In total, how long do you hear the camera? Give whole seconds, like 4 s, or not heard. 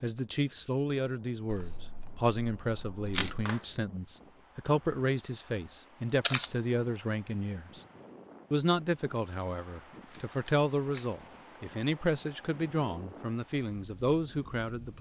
4 s.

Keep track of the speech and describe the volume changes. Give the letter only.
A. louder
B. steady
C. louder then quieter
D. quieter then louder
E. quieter
B.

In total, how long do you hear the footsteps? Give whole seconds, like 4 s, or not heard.
not heard.